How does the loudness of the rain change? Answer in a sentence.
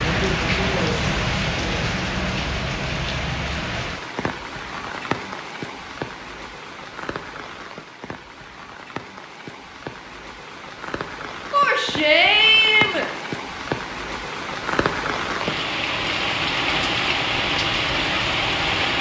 The loudness of the rain goes down, then up.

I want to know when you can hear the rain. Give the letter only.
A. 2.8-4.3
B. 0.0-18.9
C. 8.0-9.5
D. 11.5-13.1
B.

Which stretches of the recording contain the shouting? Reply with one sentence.
The shouting can be heard from 11.5 to 13.1 s.